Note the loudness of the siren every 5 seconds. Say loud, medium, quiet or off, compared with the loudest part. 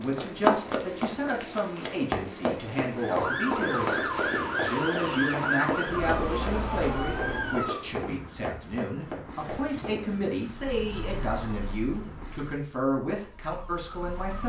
loud, loud, quiet.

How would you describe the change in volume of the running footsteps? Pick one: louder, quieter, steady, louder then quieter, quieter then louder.
quieter.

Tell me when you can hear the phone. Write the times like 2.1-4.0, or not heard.
not heard.